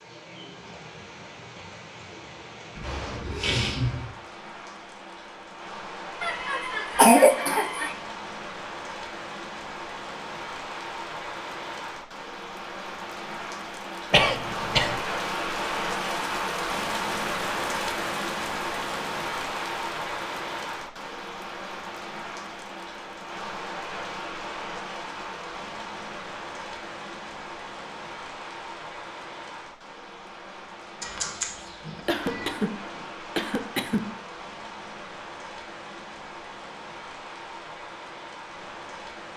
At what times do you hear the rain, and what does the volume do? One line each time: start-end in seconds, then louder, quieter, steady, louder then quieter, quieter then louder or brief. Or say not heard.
0.0-39.3 louder then quieter.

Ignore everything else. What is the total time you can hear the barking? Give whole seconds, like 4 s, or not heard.
not heard.